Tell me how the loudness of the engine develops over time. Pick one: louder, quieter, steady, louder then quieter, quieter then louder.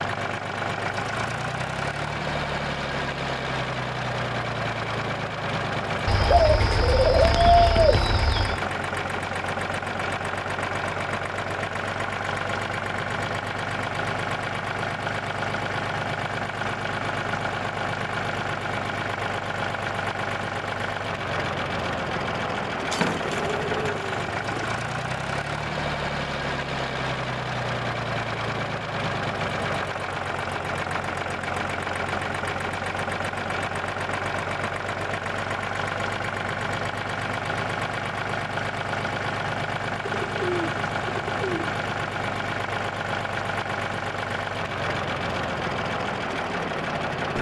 steady.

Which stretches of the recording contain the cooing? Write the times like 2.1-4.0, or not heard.
6.0-8.6, 22.9-24.6, 40.0-41.8.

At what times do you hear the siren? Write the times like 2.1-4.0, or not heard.
not heard.